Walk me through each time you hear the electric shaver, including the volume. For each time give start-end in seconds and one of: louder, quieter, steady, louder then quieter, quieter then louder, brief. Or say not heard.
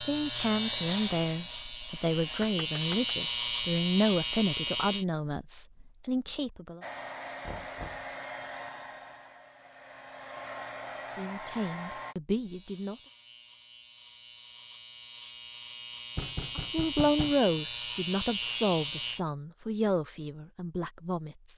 0.0-5.0 quieter then louder
12.4-19.2 louder.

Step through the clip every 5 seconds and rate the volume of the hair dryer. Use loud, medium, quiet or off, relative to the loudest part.
medium, loud, loud, off, off.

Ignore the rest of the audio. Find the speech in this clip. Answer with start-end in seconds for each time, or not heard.
0.0-6.8, 11.2-12.9, 16.6-21.5.